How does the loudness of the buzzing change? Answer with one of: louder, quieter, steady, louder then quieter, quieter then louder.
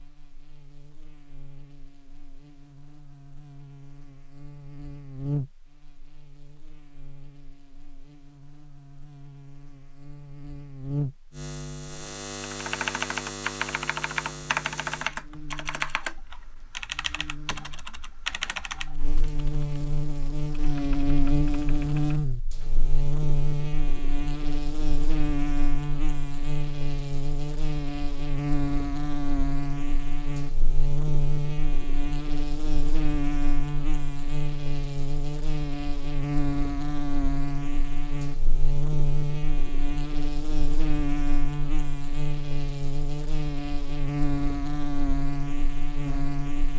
louder.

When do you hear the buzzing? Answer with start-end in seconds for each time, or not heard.
0.0-46.7.